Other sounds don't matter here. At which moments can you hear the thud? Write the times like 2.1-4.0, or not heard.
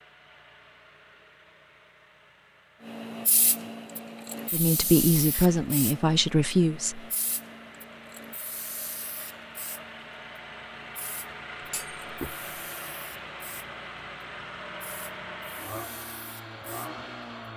11.6-12.5.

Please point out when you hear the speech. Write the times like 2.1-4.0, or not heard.
4.5-7.0.